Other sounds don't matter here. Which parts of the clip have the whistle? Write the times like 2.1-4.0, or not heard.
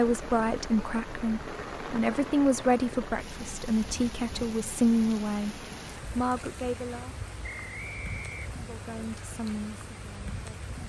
7.4-8.6.